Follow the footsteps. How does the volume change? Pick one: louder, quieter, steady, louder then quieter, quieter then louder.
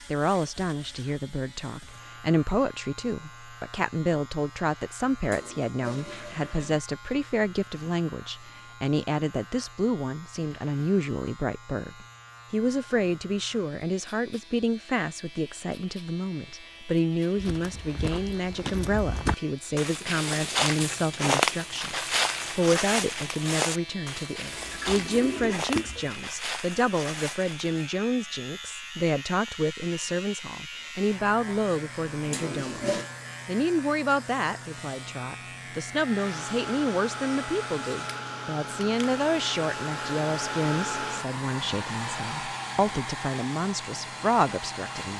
louder then quieter.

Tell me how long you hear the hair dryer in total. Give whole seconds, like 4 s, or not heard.
9 s.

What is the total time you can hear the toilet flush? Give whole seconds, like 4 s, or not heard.
4 s.